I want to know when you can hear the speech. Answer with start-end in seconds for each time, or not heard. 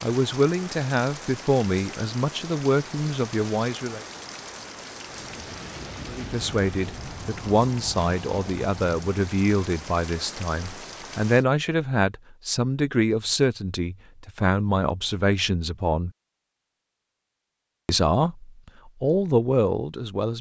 0.0-4.0, 6.0-16.1, 17.9-20.3.